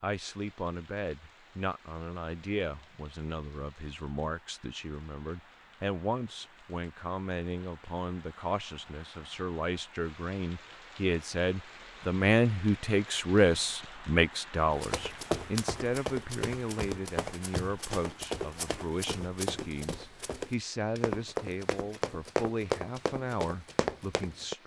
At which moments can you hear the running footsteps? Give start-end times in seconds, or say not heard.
14.7-24.6.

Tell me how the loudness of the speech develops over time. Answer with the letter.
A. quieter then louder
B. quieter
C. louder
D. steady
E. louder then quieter
E.